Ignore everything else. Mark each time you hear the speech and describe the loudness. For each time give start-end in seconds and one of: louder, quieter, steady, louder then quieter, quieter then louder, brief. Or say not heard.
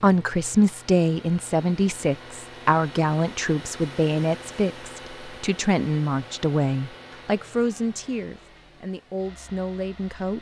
0.0-10.3 quieter.